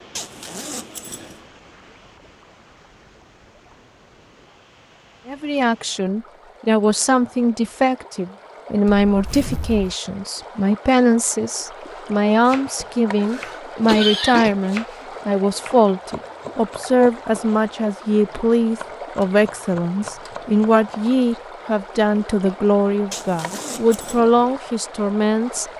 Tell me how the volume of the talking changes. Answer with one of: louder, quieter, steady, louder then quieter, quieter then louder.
steady.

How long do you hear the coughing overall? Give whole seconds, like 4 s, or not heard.
2 s.